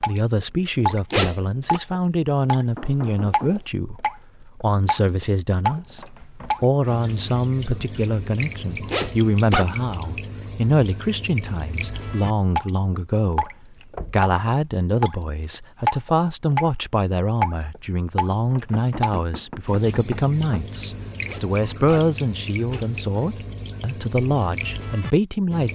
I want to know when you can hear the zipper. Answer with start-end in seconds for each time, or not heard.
1.1-1.8, 8.8-9.7, 21.2-22.9.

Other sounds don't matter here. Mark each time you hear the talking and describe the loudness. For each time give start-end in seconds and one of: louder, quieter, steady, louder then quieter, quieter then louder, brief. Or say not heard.
0.0-25.7 steady.